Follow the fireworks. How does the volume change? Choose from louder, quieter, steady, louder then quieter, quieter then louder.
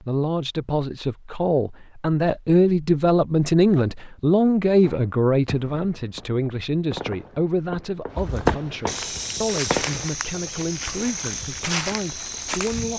louder then quieter.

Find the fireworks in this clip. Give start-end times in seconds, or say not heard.
4.8-10.1.